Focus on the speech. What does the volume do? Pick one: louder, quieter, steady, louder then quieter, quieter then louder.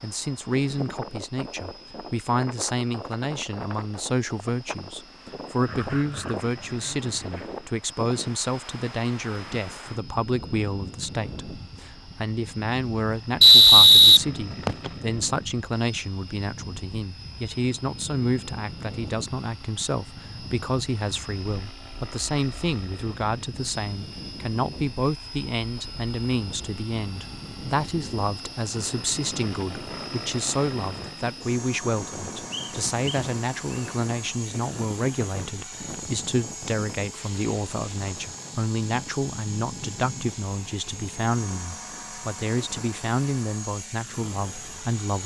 steady.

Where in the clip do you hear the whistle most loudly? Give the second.
14 s.